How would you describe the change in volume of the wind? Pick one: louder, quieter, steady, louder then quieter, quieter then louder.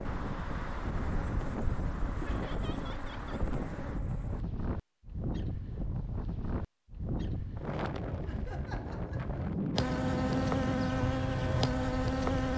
steady.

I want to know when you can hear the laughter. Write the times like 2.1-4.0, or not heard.
2.2-3.4, 8.2-9.4.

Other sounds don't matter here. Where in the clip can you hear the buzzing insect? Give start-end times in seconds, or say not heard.
0.0-4.5, 9.8-12.5.